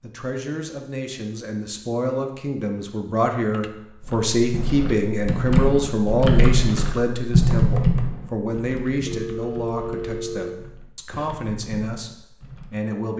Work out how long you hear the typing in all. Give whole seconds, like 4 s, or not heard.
9 s.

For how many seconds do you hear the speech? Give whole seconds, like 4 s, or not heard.
13 s.